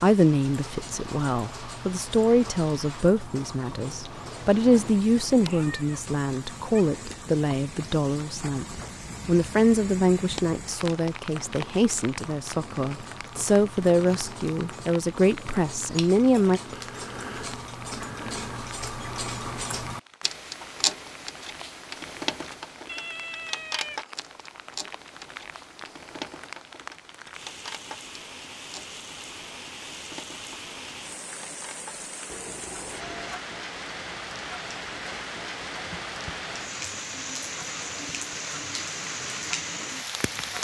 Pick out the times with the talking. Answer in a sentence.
The talking can be heard from 0.0 to 16.6 s.